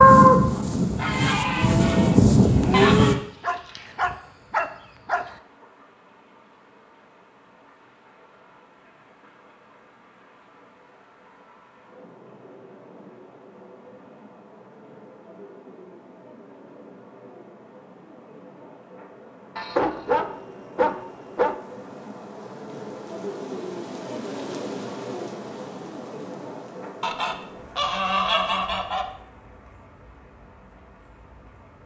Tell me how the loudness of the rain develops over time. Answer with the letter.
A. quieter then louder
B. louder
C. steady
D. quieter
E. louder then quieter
E.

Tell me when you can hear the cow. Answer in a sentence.
You can hear the cow from 0.0 to 3.1 s.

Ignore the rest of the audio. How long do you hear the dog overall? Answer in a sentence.
The dog can be heard for 4 seconds in total.